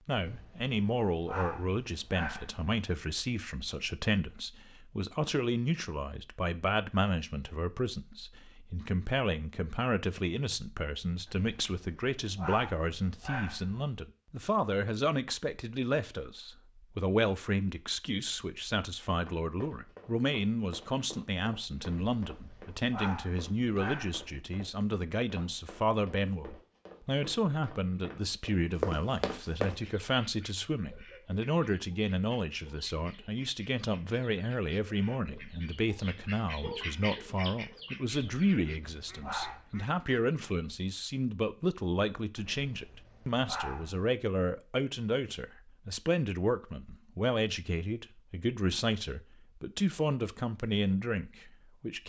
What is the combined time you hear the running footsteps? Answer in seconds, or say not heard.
11 s.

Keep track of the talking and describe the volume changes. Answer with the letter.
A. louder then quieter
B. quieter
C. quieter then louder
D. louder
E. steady
E.